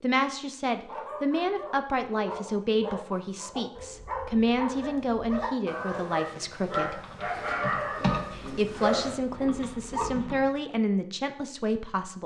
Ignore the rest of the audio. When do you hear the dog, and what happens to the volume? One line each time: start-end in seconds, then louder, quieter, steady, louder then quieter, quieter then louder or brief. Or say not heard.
0.8-10.1 louder.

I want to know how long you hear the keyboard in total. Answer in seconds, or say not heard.
4 s.